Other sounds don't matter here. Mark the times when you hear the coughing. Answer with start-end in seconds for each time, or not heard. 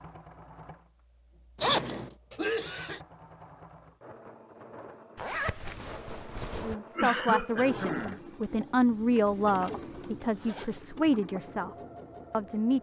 2.3-3.0, 7.0-8.2.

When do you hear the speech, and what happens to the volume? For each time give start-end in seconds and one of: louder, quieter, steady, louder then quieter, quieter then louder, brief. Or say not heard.
6.6-12.7 quieter.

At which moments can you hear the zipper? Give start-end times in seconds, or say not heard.
1.6-2.1, 5.2-6.8, 10.2-10.8.